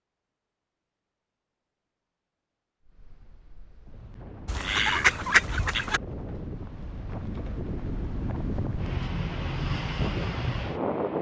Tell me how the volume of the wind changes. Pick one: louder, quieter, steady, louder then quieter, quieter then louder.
louder.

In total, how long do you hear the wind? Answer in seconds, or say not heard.
8 s.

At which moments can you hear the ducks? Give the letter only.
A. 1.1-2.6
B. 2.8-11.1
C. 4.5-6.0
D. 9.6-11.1
C.